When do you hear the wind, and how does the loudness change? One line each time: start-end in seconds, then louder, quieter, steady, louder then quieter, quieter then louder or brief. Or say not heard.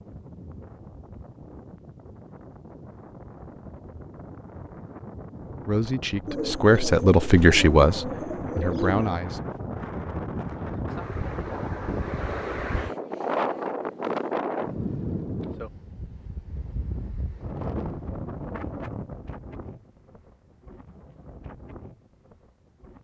0.0-22.9 louder then quieter.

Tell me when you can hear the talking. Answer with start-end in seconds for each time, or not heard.
5.7-9.4.